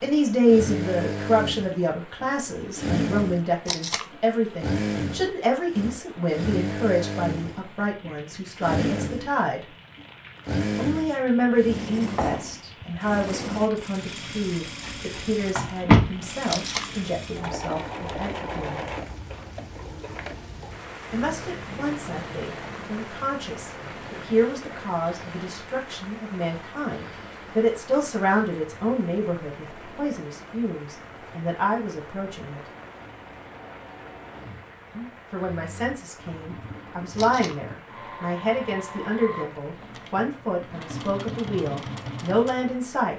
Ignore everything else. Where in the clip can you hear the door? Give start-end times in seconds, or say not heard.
14.8-16.1.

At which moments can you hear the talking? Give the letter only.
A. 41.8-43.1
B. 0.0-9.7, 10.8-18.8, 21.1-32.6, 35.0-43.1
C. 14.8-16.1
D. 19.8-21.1
B.